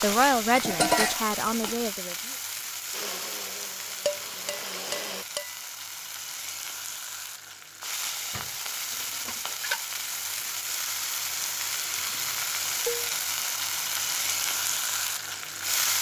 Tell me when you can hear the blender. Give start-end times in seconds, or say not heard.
2.9-5.2.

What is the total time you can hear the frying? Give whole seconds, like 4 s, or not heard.
16 s.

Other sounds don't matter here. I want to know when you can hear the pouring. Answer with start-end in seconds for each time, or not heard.
not heard.